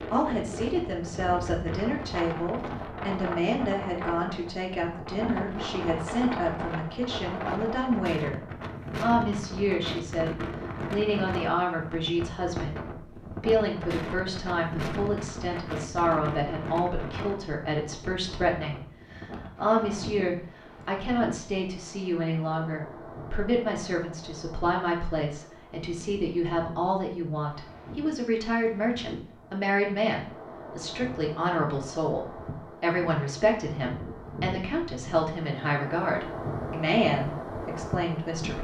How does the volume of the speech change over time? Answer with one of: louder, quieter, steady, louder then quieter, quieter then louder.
steady.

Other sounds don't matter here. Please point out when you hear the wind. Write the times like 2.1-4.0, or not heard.
0.0-38.5.